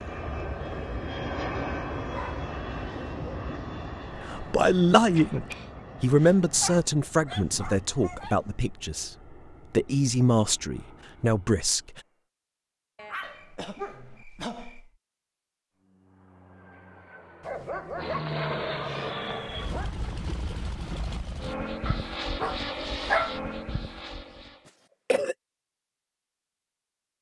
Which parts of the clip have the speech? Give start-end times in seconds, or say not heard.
4.2-12.0.